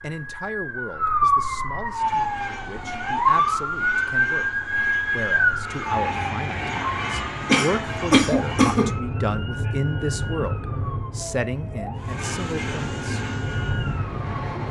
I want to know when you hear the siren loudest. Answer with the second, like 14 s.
4 s.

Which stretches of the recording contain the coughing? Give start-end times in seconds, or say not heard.
7.5-8.8.